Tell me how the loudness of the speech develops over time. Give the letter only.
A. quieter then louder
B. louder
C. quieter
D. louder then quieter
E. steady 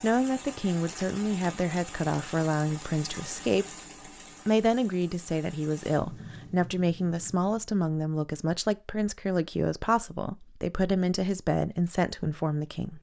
E.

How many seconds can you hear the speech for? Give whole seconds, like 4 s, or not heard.
12 s.